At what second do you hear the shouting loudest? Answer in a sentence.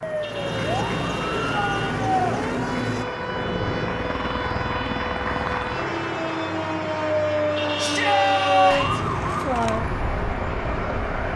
The volume of the shouting peaks at 9 seconds.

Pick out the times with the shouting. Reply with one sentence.
The shouting can be heard from 1.4 to 2.4 s and from 7.8 to 9.0 s.